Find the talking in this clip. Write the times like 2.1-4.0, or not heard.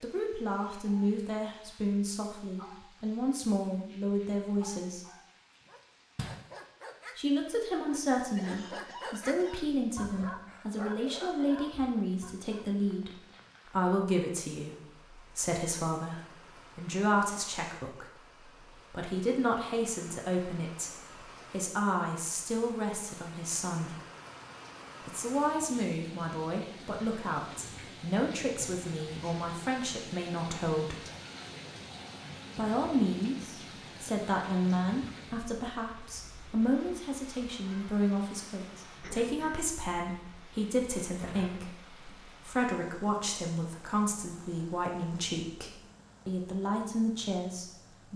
0.0-5.0, 7.2-23.9, 25.1-31.0, 32.5-48.1.